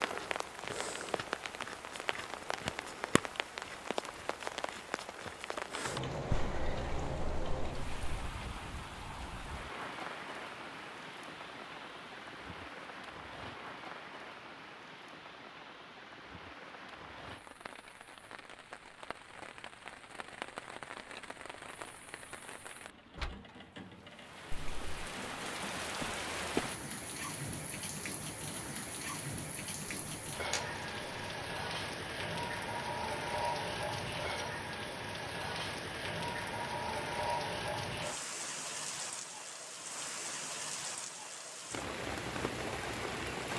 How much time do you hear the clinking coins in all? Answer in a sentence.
The clinking coins can be heard for 3 seconds in total.